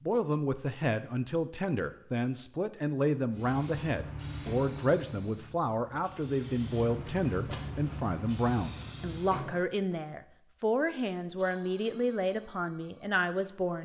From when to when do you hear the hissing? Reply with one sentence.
You can hear the hissing from 3.3 to 9.4 s.